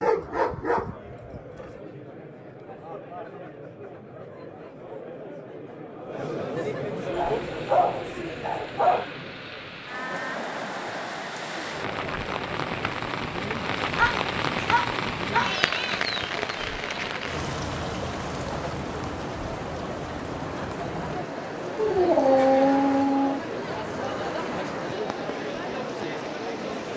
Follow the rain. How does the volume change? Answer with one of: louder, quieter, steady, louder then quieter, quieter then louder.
louder then quieter.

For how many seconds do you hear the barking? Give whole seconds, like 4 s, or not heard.
7 s.